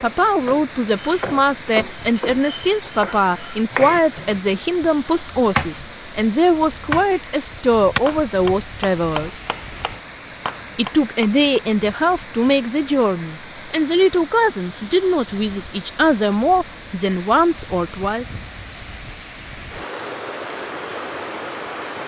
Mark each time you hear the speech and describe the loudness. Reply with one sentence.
You can hear the speech from 0.0 to 9.4 s, at a steady volume; and from 10.8 to 18.4 s, at a steady volume.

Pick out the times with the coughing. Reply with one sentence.
You can't hear the coughing here.